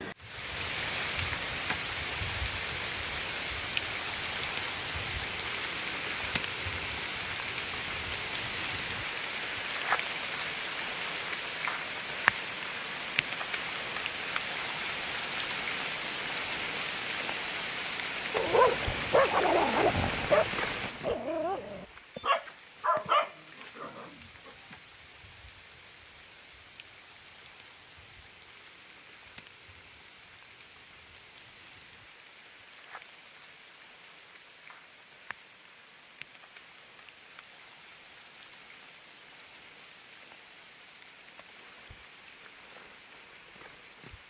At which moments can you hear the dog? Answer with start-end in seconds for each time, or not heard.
18.3-24.8.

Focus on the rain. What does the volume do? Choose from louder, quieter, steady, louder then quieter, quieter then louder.
quieter.